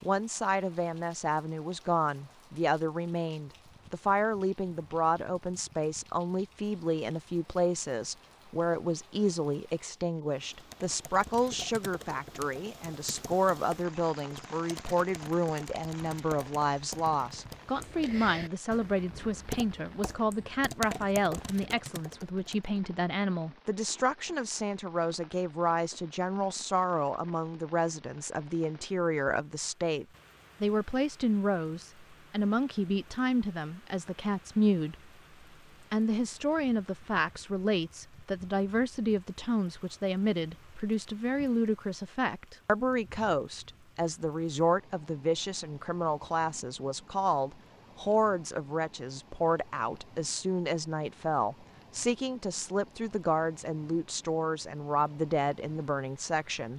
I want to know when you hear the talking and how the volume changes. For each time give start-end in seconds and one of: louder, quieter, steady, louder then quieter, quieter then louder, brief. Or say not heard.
0.0-35.0 steady
35.9-56.7 steady.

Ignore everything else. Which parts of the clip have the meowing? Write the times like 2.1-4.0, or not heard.
not heard.